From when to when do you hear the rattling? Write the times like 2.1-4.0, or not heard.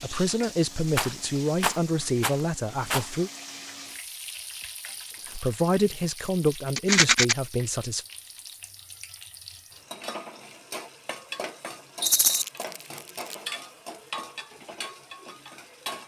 0.9-3.0, 6.8-7.3, 12.0-12.4.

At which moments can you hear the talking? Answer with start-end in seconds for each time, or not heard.
0.0-3.3, 5.3-8.1.